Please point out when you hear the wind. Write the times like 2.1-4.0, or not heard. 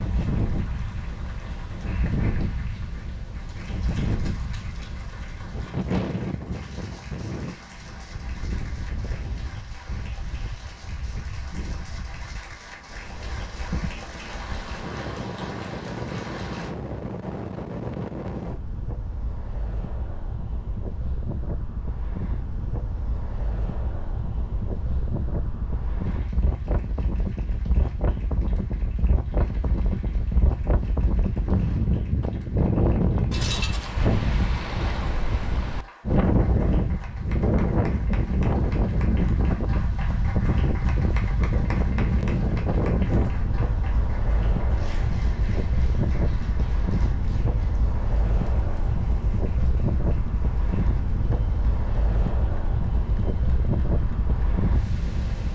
0.0-55.5.